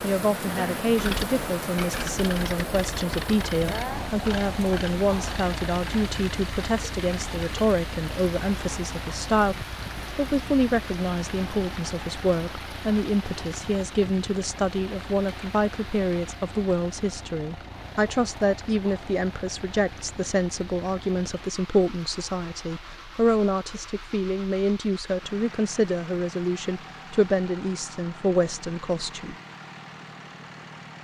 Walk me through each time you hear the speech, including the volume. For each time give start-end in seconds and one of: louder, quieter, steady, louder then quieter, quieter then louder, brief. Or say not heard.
0.0-29.4 steady.